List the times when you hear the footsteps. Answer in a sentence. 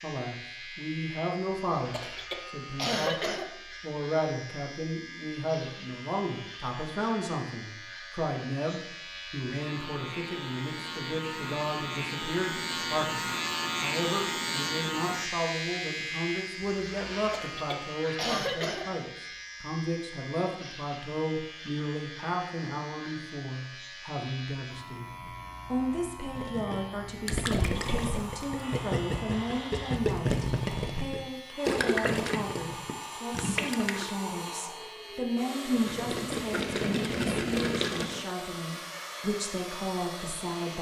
You can't hear the footsteps here.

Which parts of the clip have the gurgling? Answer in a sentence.
You can hear the gurgling from 26.2 to 34.1 s and from 35.8 to 38.2 s.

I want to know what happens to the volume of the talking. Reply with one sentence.
The loudness of the talking stays about the same.